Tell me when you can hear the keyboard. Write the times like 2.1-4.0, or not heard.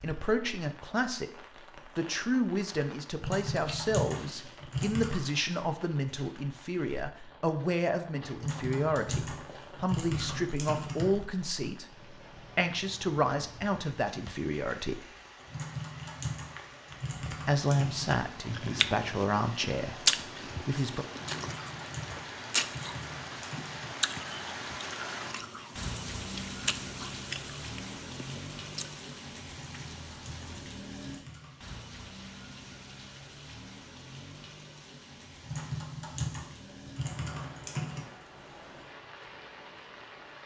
3.2-5.2, 8.3-11.2, 15.4-18.2, 21.1-23.9, 29.5-31.8, 35.4-38.0.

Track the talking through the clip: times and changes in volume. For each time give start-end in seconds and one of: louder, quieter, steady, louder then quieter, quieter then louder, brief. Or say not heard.
0.0-1.3 brief
1.9-15.1 steady
17.4-20.1 brief
20.6-21.1 brief.